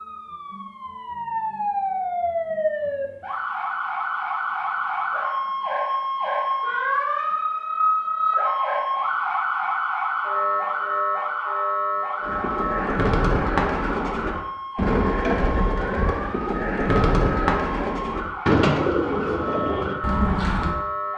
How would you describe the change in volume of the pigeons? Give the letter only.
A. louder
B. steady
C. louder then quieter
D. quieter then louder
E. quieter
B.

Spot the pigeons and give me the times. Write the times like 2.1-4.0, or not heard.
12.2-20.8.